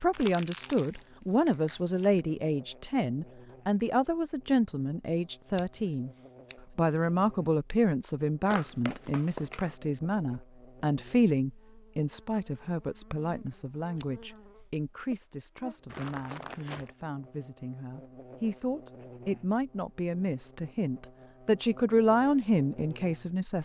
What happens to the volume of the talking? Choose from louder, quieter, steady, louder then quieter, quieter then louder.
quieter then louder.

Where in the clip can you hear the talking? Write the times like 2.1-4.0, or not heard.
0.0-6.1, 6.8-23.6.